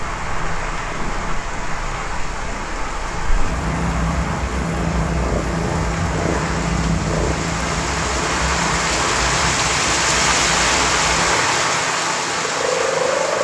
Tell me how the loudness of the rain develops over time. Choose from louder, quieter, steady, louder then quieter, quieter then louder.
louder.